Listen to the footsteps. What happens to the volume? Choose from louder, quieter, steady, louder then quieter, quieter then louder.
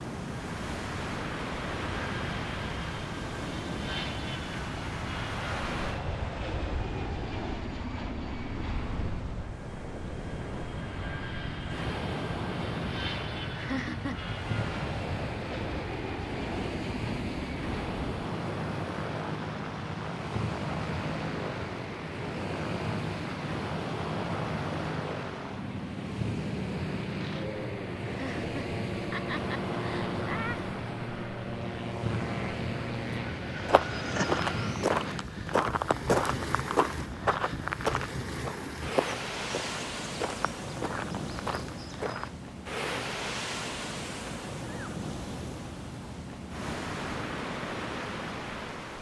quieter.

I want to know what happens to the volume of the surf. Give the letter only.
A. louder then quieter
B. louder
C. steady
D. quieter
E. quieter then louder
C.